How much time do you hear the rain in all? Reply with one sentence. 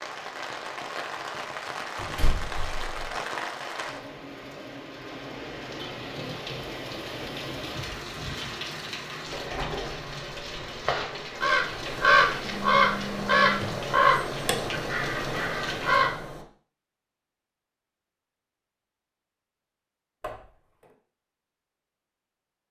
You can hear the rain for 16 seconds altogether.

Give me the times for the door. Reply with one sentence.
The door can be heard from 1.9 to 3.1 s, from 9.2 to 11.6 s and from 20.2 to 20.9 s.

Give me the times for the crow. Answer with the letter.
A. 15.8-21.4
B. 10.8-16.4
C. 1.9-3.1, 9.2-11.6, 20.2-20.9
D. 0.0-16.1
B.